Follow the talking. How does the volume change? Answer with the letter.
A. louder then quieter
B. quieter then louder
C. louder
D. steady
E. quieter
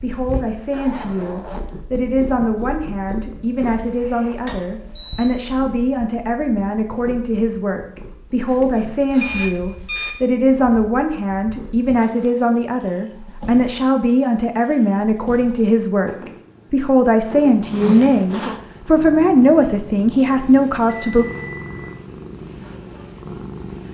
C.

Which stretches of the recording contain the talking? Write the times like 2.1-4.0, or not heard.
0.0-21.2.